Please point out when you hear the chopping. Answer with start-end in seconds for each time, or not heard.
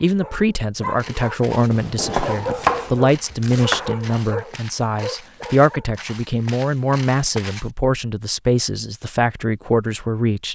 1.7-4.0.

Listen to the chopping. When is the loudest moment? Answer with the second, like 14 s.
3 s.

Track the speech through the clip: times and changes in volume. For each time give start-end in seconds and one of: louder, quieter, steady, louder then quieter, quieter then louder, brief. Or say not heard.
0.0-10.5 steady.